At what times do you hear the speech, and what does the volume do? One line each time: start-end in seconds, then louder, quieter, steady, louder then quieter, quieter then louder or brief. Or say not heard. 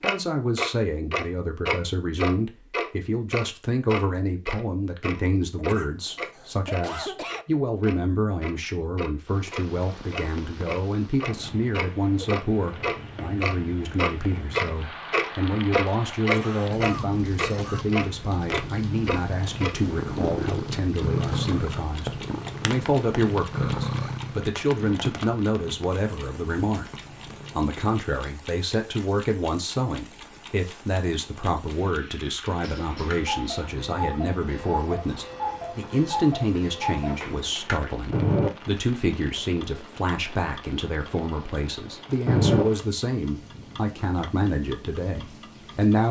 0.0-26.9 steady
27.5-46.0 steady.